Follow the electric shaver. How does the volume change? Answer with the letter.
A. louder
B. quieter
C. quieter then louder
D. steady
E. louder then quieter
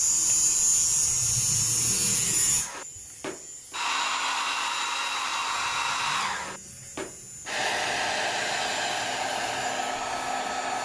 B.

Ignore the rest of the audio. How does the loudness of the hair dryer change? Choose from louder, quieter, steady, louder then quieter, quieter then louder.
louder.